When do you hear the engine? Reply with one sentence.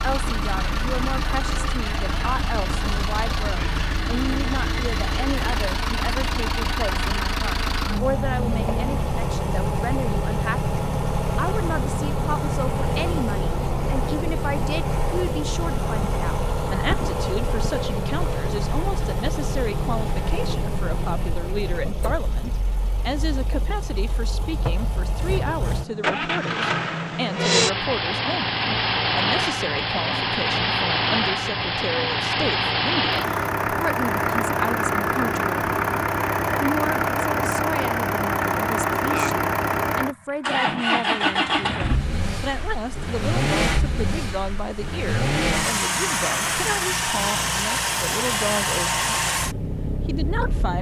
The engine can be heard from 0.0 to 50.7 s.